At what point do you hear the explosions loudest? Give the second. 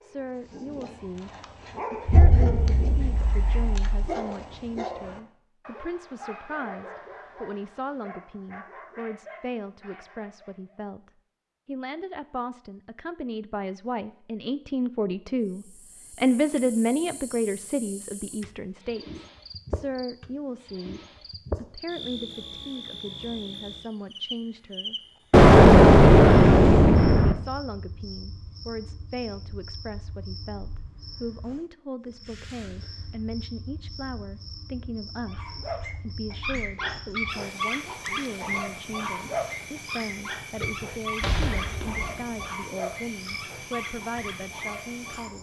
26 s.